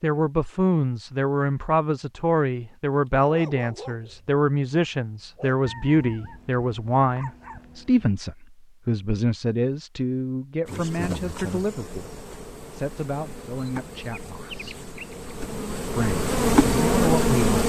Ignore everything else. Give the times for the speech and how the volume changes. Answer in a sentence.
The speech can be heard from 0.0 to 14.9 s, getting quieter; and briefly from 15.9 to 17.6 s.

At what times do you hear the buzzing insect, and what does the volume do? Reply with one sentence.
You can hear the buzzing insect from 10.7 to 17.6 s, getting quieter then louder.